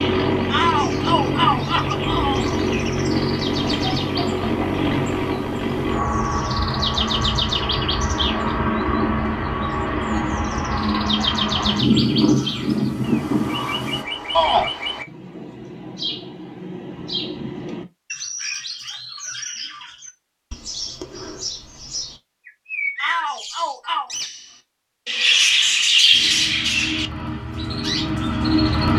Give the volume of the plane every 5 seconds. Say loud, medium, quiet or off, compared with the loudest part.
loud, loud, loud, off, off, loud.